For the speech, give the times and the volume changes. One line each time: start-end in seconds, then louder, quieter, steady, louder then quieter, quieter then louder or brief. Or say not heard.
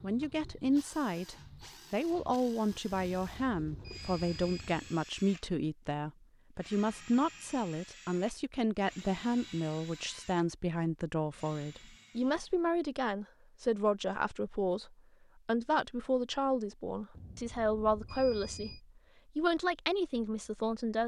0.0-21.0 steady.